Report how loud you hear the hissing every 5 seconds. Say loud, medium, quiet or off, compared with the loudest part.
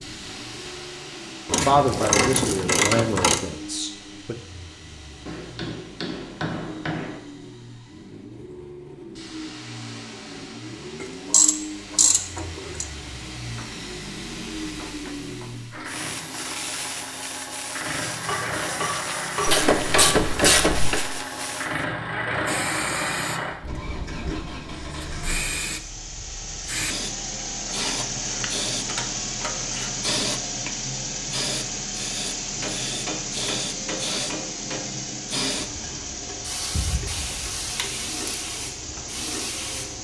medium, quiet, medium, loud, loud, loud, loud, loud.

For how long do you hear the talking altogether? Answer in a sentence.
The talking can be heard for 3 seconds in total.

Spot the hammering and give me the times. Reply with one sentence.
You can hear the hammering from 5.2 to 7.2 s, from 18.2 to 20.1 s and from 32.4 to 35.0 s.